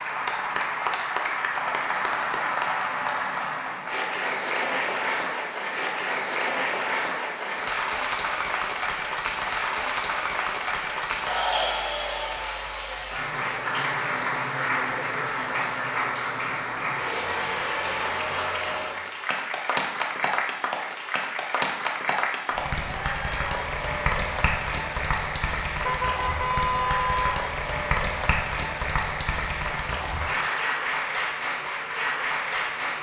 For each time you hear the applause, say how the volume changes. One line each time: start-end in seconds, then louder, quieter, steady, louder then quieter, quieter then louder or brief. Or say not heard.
0.0-32.9 steady.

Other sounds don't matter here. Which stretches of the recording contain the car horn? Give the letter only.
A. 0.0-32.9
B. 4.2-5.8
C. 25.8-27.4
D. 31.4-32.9
C.